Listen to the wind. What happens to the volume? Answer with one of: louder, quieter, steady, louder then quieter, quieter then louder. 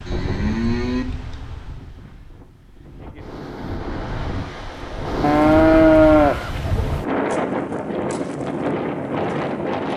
louder.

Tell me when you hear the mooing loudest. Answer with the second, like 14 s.
6 s.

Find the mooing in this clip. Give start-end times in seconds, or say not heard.
0.1-1.1, 5.2-7.0.